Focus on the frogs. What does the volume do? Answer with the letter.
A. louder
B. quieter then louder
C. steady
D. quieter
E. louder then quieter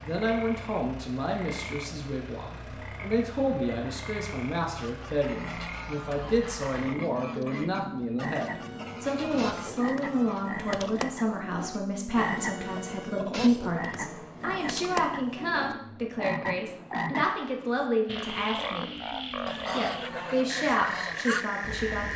A.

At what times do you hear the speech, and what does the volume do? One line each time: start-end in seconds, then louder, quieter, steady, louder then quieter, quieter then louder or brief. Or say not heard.
0.0-18.9 steady
19.7-22.1 brief.